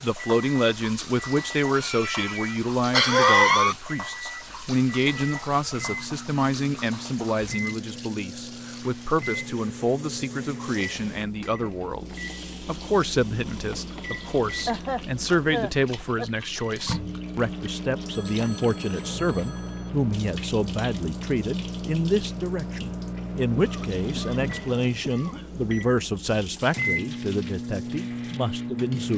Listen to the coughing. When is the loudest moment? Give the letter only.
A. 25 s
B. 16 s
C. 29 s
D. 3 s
D.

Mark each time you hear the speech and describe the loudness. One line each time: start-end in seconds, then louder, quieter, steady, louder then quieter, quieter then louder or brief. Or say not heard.
0.0-29.1 steady.